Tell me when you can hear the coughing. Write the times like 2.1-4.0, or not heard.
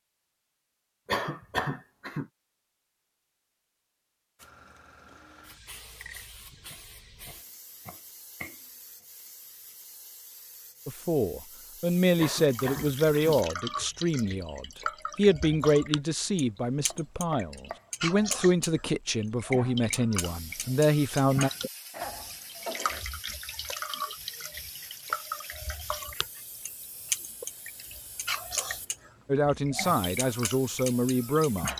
1.1-2.2, 12.2-13.9, 21.9-23.1.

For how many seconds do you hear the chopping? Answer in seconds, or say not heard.
3 s.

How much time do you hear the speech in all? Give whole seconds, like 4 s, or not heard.
13 s.